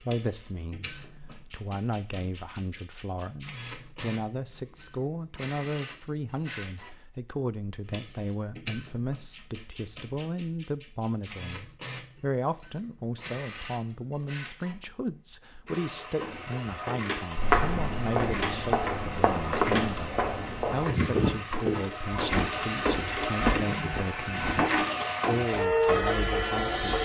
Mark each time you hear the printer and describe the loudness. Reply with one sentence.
The printer can be heard from 0.0 to 27.0 s, getting louder.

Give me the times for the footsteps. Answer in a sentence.
You can hear the footsteps from 17.4 to 24.6 s.